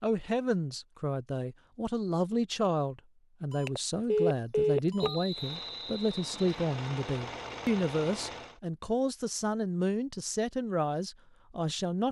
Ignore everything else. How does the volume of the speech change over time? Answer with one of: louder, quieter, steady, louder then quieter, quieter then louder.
steady.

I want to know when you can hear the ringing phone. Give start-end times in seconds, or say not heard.
3.5-5.2.